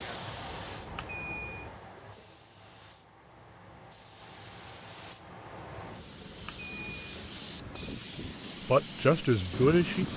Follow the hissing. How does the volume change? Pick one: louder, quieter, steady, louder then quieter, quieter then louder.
quieter then louder.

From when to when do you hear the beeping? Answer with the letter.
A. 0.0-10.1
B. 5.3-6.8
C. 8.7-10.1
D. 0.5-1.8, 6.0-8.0
D.